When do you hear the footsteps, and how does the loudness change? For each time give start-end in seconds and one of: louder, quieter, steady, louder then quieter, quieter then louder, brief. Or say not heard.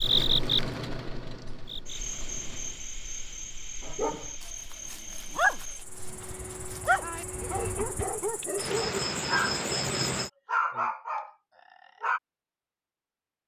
not heard.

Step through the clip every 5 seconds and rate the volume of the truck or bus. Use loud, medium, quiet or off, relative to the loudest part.
loud, loud, off.